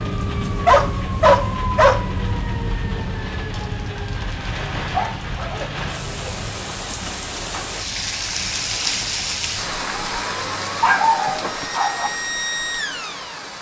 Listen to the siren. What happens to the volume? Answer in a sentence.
The loudness of the siren goes down, then up.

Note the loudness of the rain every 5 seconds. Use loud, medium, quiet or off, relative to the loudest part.
medium, loud, loud.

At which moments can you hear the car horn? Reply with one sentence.
You can't hear the car horn here.